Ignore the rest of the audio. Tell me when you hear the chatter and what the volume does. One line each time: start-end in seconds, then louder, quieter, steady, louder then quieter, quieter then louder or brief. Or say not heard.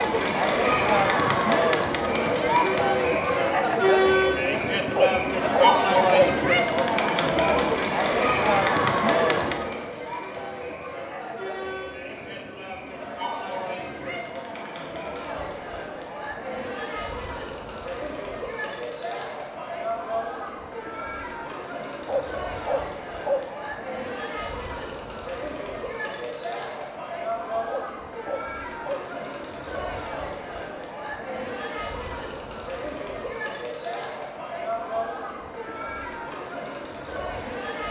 0.0-37.8 quieter.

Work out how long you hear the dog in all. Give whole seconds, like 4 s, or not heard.
4 s.